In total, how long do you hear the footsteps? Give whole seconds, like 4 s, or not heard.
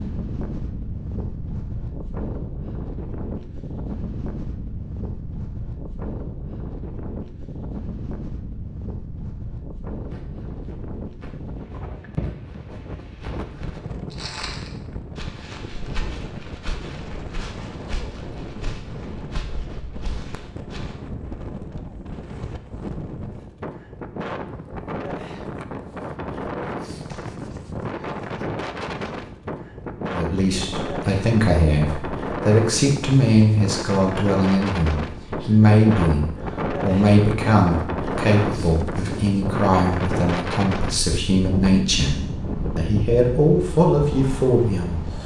11 s.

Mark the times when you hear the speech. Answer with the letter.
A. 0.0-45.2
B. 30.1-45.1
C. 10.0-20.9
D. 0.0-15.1
B.